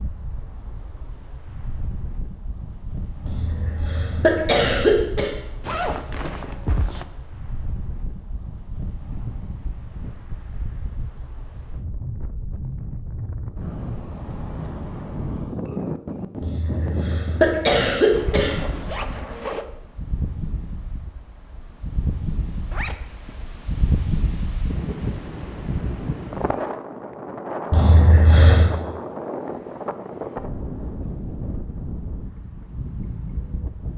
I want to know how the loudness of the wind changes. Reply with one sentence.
The loudness of the wind goes up.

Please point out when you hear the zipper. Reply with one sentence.
You can hear the zipper from 5.6 to 7.0 s, from 18.1 to 19.6 s and from 22.7 to 23.4 s.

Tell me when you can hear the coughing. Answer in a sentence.
You can hear the coughing from 3.2 to 5.3 s, from 16.4 to 18.6 s and from 27.7 to 28.7 s.